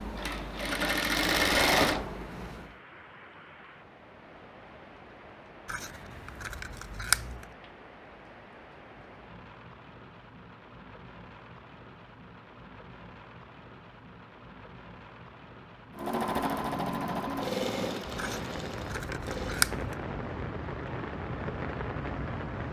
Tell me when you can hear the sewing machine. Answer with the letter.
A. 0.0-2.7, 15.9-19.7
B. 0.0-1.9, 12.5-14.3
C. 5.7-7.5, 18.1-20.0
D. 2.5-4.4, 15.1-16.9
A.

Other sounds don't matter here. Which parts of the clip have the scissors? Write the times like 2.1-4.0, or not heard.
5.7-7.5, 18.1-20.0.